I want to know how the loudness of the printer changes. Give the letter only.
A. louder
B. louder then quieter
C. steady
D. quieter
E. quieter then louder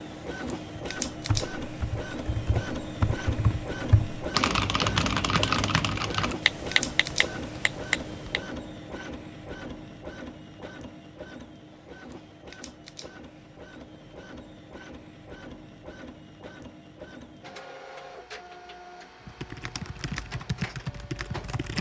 D.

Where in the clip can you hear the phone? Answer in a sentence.
You can't hear the phone here.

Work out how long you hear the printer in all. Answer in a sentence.
You can hear the printer for 22 seconds altogether.